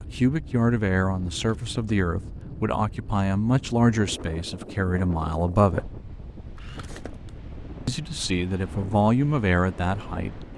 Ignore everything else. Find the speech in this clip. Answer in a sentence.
The speech can be heard from 0.0 to 5.8 s and from 7.8 to 10.3 s.